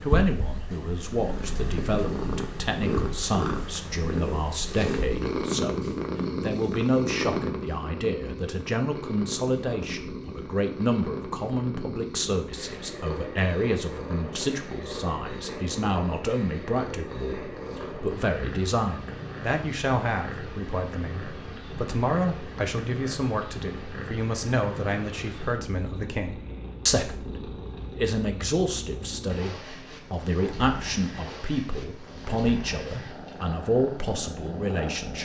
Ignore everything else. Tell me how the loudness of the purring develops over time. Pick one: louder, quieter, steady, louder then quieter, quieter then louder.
quieter.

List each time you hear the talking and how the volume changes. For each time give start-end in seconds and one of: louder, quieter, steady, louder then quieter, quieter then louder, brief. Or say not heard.
0.0-35.1 steady.